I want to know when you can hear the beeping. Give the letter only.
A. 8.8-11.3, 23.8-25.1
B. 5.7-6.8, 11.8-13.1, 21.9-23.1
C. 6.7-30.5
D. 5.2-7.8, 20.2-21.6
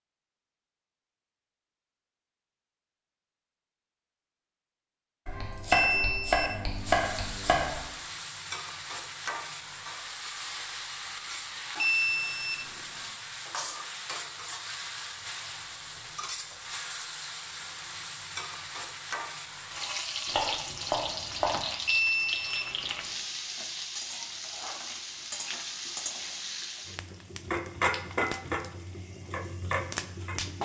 B.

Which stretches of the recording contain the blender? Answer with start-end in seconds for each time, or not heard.
not heard.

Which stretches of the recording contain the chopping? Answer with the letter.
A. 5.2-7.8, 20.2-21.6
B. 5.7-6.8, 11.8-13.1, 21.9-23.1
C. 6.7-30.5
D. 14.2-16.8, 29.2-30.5
A.